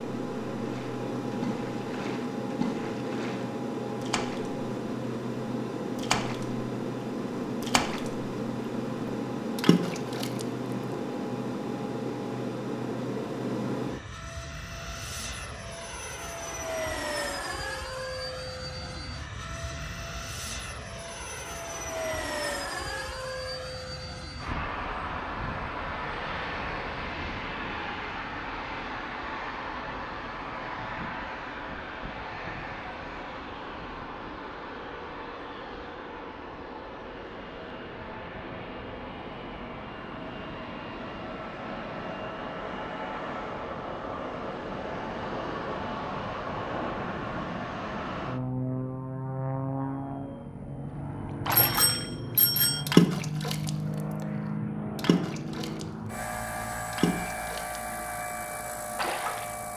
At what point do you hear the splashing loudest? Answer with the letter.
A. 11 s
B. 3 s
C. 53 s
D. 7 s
C.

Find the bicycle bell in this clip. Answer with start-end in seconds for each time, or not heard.
51.5-52.9.